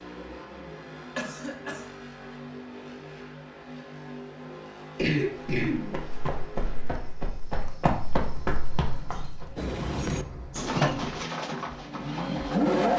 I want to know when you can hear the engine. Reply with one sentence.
The engine can be heard from 0.0 to 12.9 s.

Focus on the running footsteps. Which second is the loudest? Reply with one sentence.
The volume of the running footsteps peaks at 8 seconds.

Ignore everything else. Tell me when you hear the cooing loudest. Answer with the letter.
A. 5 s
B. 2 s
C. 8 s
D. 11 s
D.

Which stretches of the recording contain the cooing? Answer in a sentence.
The cooing can be heard from 9.6 to 12.7 s.